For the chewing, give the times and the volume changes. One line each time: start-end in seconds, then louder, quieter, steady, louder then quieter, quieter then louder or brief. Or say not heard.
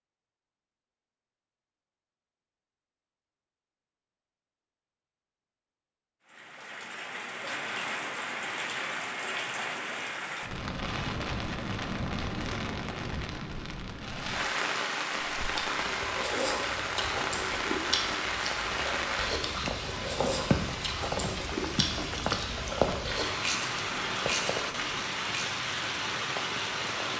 15.2-25.6 steady.